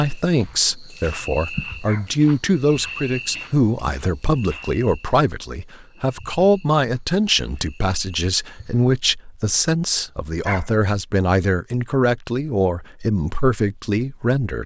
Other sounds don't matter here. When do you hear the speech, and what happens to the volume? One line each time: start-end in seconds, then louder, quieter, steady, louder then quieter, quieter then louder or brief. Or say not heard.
0.0-14.6 steady.